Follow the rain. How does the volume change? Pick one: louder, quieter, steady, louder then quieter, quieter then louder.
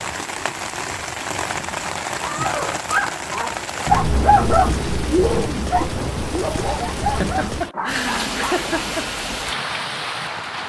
steady.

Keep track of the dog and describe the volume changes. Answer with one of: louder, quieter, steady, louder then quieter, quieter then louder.
louder then quieter.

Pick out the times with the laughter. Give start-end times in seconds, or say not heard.
1.4-1.9, 7.0-9.0.